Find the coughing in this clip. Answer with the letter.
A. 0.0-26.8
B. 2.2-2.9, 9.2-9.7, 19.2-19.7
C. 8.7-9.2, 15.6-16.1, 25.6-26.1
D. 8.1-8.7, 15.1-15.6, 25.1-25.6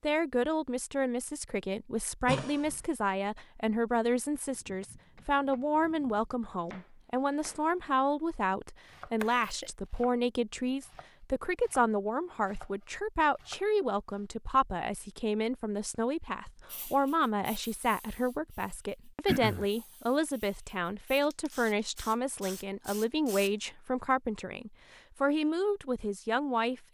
B.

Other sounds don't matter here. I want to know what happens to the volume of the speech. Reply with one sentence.
The loudness of the speech stays about the same.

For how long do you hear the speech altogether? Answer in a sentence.
The speech can be heard for 27 seconds in total.